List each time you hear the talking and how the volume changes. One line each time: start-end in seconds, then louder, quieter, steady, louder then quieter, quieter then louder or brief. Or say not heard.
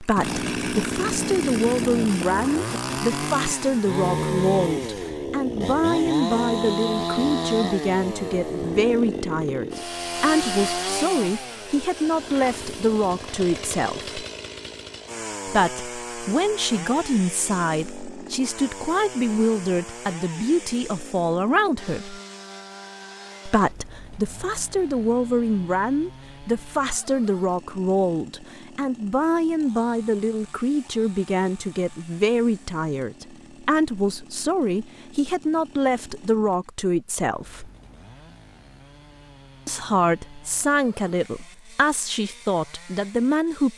0.0-14.2 steady
15.4-22.2 steady
23.4-37.7 steady
39.6-43.7 steady.